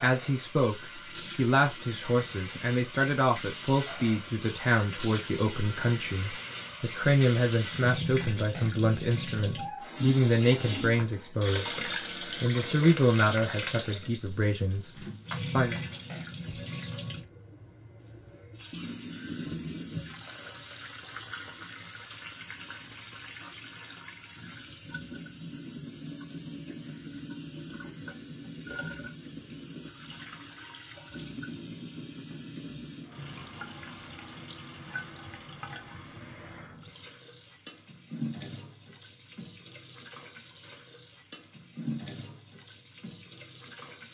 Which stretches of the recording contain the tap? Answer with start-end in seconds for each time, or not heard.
0.0-44.0.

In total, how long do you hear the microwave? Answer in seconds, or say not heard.
not heard.